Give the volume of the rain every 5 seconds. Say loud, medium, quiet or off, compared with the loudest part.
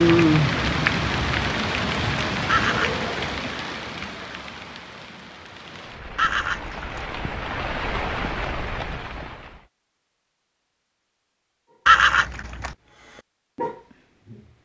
loud, medium, off.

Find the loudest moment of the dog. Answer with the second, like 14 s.
14 s.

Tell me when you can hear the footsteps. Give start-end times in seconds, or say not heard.
not heard.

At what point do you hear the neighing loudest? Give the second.
12 s.